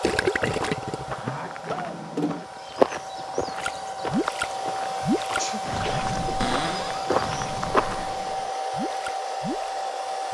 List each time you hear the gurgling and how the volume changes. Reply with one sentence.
The gurgling can be heard briefly from 0.0 to 1.3 s; and from 3.5 to 9.7 s, getting quieter.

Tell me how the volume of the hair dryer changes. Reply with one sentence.
The loudness of the hair dryer goes up.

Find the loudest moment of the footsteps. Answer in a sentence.
The volume of the footsteps peaks at 3 seconds.